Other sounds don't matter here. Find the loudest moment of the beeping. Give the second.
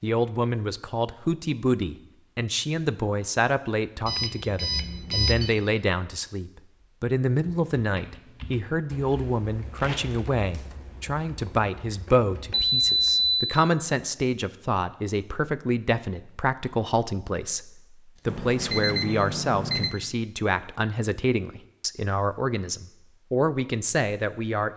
13 s.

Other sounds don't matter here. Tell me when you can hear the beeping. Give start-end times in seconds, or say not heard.
4.0-5.5, 12.6-13.6, 18.2-19.9.